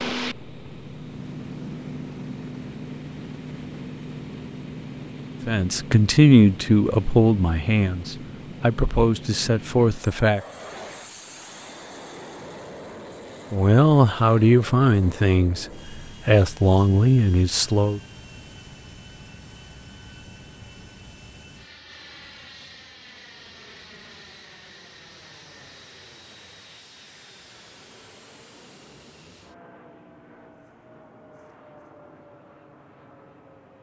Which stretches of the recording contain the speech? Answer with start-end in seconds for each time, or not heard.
5.5-10.4, 13.5-18.0.